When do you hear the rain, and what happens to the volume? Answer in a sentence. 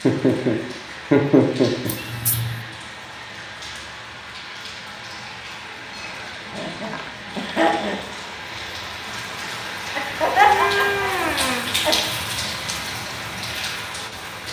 You can hear the rain from 0.0 to 14.4 s, getting louder.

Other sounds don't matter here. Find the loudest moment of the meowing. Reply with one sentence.
The loudest moment of the meowing is at 11 seconds.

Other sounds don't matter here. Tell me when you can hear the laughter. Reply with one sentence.
The laughter can be heard from 0.0 to 1.9 s, from 6.5 to 8.0 s and from 9.9 to 12.1 s.